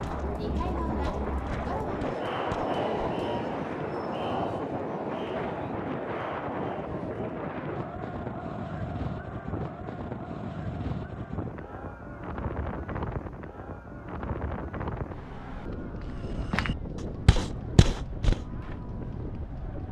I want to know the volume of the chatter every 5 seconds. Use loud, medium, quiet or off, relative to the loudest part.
loud, medium, quiet, quiet.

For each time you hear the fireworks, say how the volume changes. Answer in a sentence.
The fireworks can't be heard in this clip.